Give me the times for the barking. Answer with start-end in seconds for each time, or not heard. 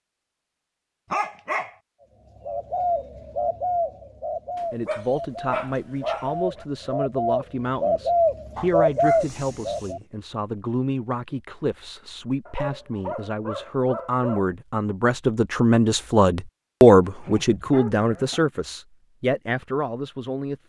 1.1-1.7, 4.5-6.7, 8.6-10.1, 12.4-14.5, 17.0-18.4.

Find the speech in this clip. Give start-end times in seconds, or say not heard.
4.7-20.6.